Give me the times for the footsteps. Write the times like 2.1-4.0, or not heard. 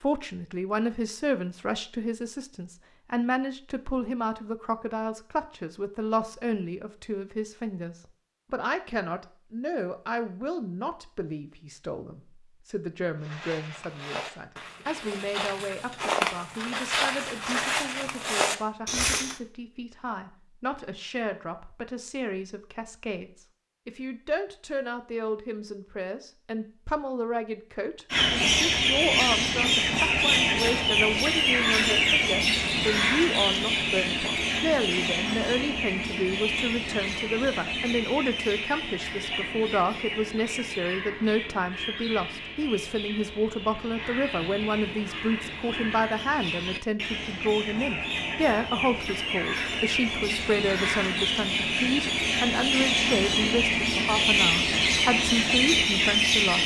13.2-19.4.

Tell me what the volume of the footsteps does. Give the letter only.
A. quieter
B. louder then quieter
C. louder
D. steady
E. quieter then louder
C.